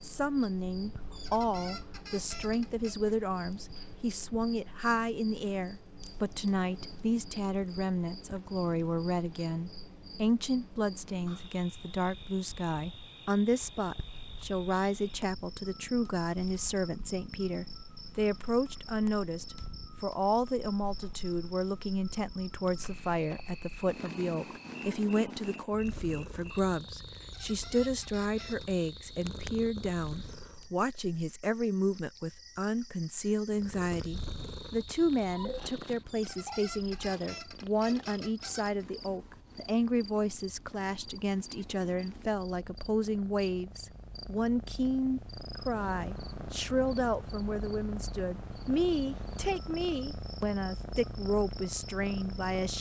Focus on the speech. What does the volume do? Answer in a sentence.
The loudness of the speech stays about the same.